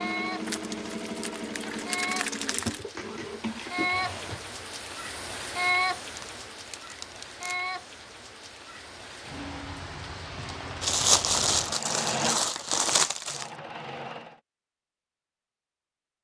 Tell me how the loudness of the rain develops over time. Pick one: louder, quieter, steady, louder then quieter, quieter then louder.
louder then quieter.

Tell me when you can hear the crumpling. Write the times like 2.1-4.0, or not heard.
0.5-2.9, 6.2-7.6, 10.8-13.5.